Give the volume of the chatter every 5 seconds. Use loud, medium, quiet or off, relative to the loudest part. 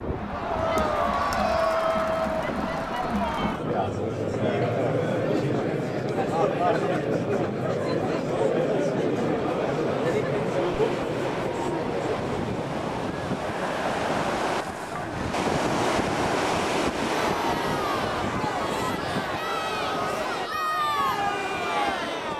loud, loud, loud, medium, loud.